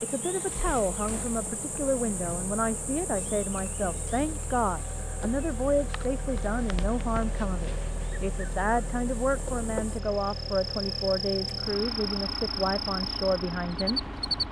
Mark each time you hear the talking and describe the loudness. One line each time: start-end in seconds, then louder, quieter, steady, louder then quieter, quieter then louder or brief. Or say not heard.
0.0-14.4 steady.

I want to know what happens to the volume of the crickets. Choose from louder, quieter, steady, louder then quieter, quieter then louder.
quieter then louder.